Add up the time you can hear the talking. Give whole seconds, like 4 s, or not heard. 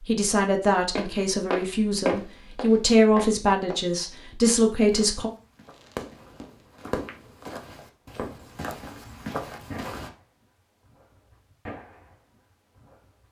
5 s.